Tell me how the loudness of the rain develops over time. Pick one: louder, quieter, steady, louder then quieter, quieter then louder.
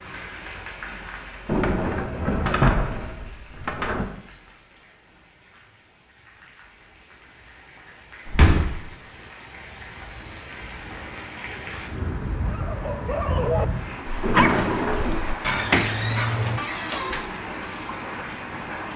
quieter then louder.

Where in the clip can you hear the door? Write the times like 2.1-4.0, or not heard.
1.4-4.1, 8.2-8.8, 14.2-15.2.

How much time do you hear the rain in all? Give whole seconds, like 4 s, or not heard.
19 s.